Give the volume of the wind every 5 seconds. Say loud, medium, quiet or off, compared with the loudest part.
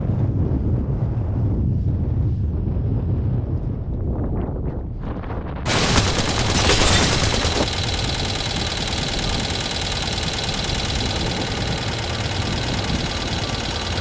loud, medium, medium.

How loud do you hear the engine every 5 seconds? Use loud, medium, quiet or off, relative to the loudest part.
off, loud, loud.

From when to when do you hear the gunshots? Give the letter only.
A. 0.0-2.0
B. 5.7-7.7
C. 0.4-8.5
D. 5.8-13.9
B.